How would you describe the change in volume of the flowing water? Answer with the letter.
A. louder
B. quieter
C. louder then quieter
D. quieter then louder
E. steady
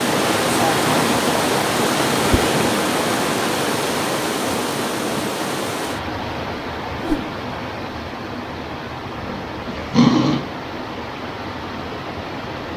B.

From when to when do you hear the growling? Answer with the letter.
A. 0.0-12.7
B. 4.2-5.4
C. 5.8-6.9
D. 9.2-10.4
D.